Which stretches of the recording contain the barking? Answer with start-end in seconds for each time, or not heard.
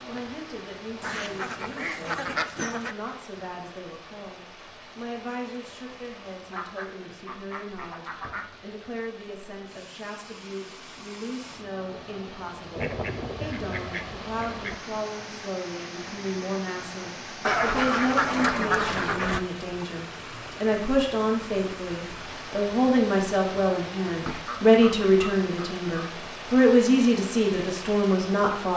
not heard.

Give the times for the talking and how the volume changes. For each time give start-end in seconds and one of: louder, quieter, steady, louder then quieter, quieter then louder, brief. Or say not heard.
0.1-28.7 louder.